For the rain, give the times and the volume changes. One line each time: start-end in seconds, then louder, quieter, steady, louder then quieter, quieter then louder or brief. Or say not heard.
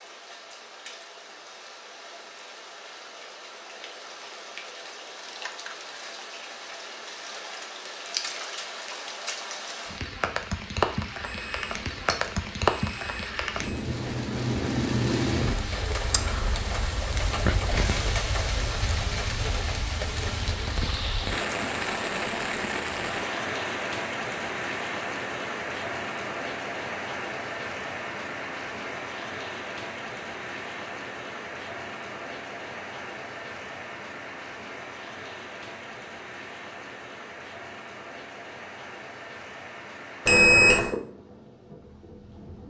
0.0-42.6 louder then quieter.